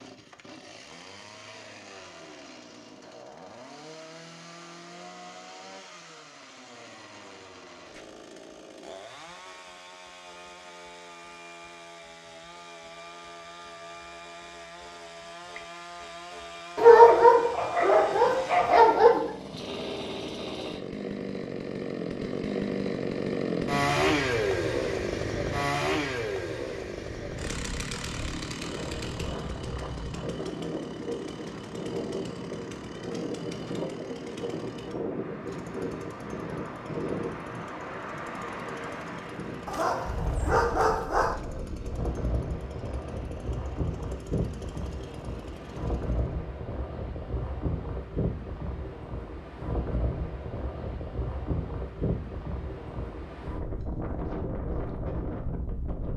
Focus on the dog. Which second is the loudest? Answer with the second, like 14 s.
17 s.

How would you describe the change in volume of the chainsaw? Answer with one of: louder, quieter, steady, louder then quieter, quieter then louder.
louder then quieter.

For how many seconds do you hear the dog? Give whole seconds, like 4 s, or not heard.
4 s.